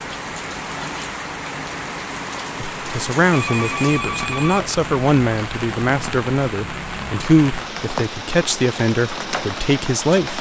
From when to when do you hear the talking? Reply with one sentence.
The talking can be heard from 2.8 to 10.3 s.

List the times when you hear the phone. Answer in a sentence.
You can hear the phone from 3.3 to 4.8 s.